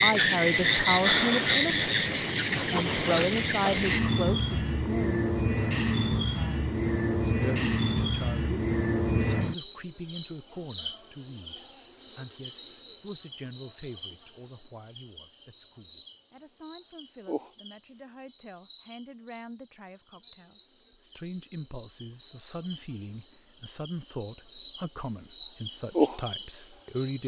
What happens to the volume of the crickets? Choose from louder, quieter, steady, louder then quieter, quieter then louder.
quieter then louder.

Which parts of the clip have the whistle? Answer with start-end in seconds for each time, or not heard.
not heard.